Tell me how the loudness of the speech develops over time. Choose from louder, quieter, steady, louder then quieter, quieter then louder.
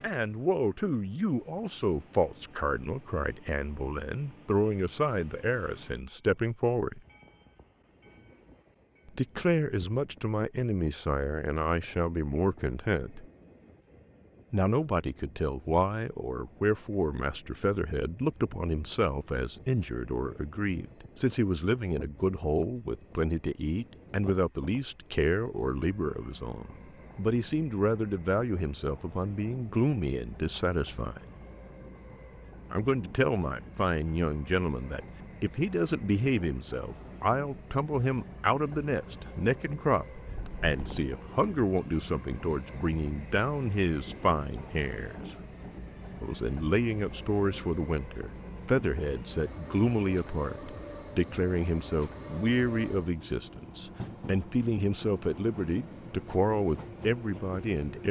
steady.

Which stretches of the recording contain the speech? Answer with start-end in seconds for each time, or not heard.
0.0-7.0, 9.1-13.2, 14.5-31.2, 32.7-45.2, 46.2-58.0.